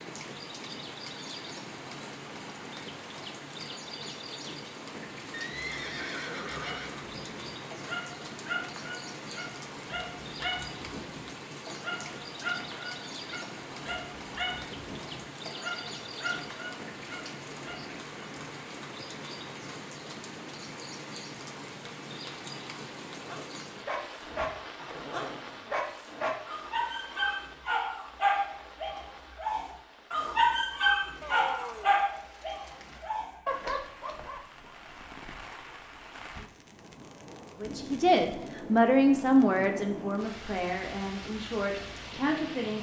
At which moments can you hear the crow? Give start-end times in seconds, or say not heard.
not heard.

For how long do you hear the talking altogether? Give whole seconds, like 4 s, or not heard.
5 s.